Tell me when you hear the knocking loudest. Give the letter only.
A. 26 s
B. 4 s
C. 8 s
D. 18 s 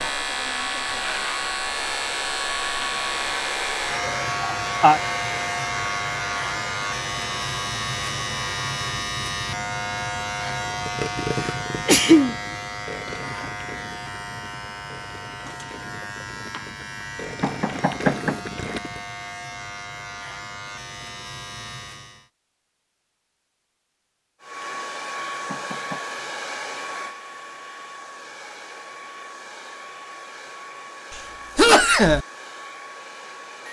D.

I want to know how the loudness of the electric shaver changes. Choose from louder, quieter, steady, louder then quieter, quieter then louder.
quieter.